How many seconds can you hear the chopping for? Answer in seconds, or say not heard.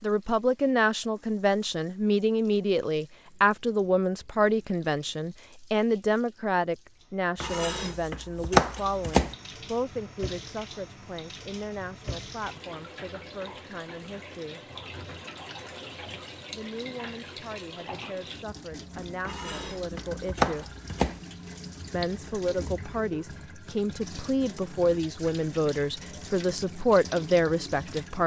4 s.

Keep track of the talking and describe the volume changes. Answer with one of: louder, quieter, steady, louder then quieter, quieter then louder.
quieter then louder.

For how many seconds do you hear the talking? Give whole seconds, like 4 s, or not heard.
25 s.